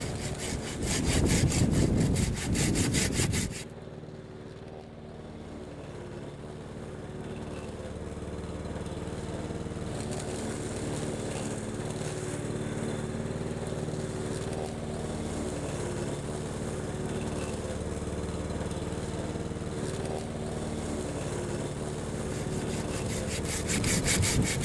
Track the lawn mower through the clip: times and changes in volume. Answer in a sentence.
The lawn mower can be heard from 0.0 to 24.6 s, getting louder.